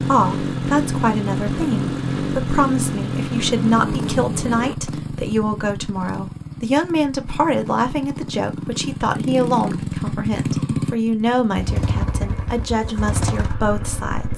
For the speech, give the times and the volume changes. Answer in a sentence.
The speech can be heard from 0.1 to 14.3 s, at a steady volume.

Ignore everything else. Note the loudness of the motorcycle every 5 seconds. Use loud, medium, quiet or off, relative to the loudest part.
loud, medium, loud.